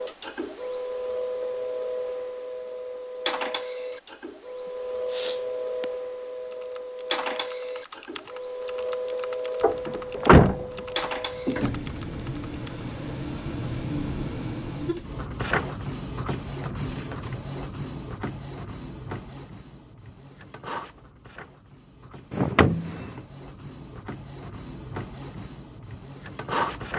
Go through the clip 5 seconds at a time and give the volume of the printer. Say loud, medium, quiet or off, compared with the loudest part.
loud, loud, loud, loud, medium, loud.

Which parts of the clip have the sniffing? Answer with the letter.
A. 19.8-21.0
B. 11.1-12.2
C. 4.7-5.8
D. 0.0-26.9
C.